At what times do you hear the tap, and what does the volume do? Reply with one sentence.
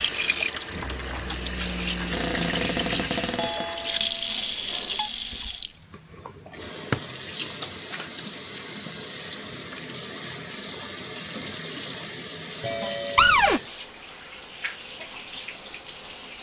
The tap can be heard from 0.0 to 16.3 s, getting quieter.